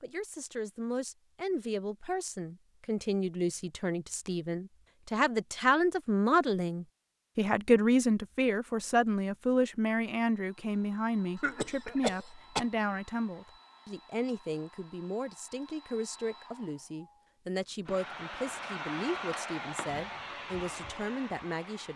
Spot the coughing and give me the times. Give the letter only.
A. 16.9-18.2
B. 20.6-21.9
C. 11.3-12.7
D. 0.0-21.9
C.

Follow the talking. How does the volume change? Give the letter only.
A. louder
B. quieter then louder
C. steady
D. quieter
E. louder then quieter
E.